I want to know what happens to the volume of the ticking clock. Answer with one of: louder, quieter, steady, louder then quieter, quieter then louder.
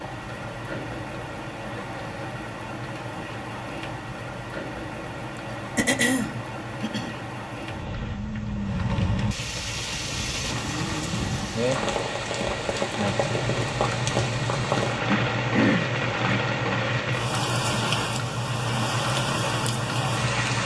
louder.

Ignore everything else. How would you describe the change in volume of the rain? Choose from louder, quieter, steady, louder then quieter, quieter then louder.
louder.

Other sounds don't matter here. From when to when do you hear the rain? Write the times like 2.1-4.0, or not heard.
0.0-20.6.